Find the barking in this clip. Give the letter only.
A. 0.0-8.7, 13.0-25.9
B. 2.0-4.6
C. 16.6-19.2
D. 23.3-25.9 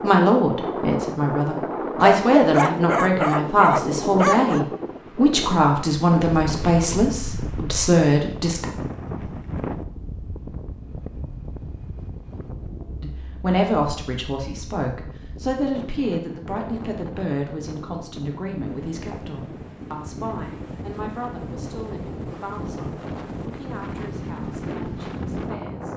B.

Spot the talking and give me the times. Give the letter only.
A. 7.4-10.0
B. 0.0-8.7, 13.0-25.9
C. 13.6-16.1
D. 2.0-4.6
B.